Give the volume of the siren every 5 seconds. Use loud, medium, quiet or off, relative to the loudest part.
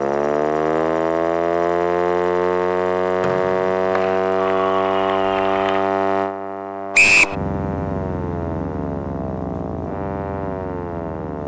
loud, medium, medium.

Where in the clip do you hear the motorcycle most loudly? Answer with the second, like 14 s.
8 s.